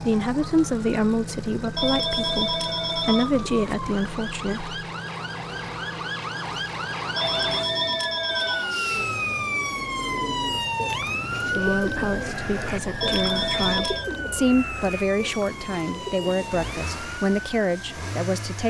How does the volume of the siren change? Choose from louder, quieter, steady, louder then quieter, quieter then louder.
louder then quieter.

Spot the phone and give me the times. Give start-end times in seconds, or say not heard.
1.8-3.8, 7.2-8.7, 13.0-14.1.